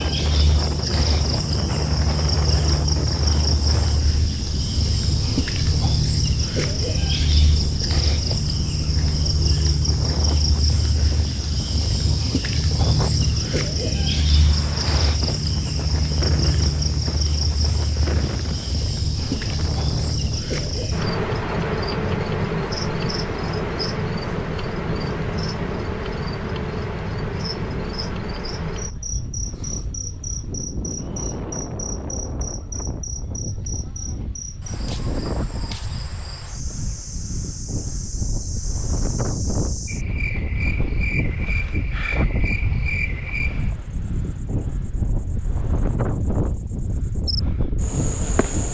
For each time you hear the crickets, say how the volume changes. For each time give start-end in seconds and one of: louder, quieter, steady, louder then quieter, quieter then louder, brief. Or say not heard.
0.0-48.7 quieter.